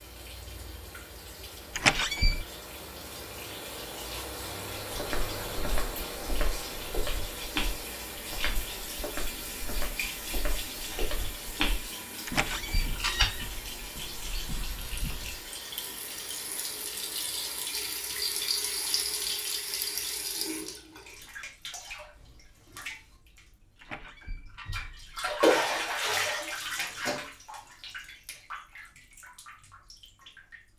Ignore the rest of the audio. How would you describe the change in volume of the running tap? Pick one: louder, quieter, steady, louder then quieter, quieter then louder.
louder.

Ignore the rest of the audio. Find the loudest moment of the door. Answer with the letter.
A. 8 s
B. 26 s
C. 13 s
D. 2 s
D.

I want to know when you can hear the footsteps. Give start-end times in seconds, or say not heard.
5.0-15.3.